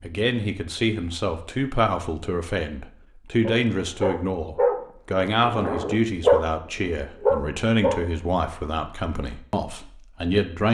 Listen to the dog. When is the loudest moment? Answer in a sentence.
The loudest moment of the dog is at 6 seconds.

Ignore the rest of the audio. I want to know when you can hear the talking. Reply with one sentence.
The talking can be heard from 0.0 to 10.6 s.